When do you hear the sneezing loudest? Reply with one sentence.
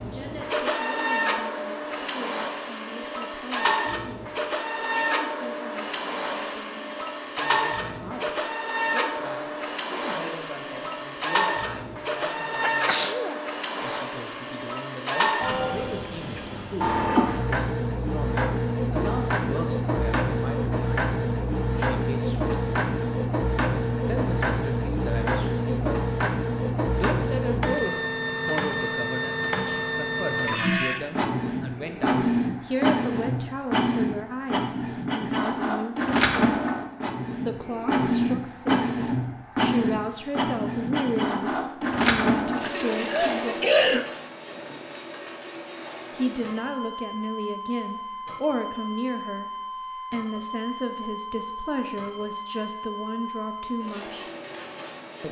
The loudest moment of the sneezing is at 44 seconds.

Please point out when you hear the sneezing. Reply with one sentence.
The sneezing can be heard from 12.7 to 13.3 s and from 43.0 to 44.0 s.